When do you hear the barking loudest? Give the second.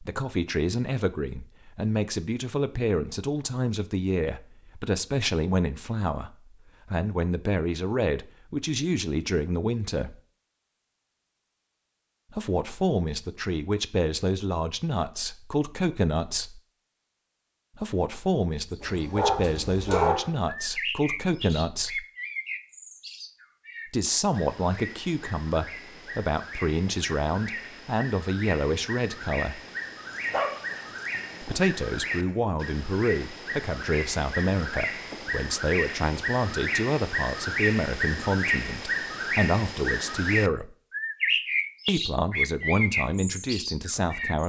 20 s.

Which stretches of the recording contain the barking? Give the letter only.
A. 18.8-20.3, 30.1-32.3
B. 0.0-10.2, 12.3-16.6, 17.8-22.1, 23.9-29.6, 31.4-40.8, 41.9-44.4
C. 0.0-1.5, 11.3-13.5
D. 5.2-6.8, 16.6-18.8
A.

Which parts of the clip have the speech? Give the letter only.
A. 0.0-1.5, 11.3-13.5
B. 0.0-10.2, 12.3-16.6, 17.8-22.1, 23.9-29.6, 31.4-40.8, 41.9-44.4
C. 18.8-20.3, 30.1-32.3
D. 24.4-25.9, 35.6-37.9
B.